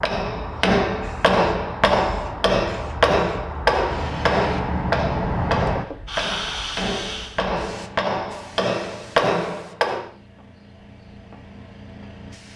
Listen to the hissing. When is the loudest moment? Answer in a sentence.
The loudest moment of the hissing is at 5 seconds.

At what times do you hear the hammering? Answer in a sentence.
The hammering can be heard from 0.0 to 10.1 s.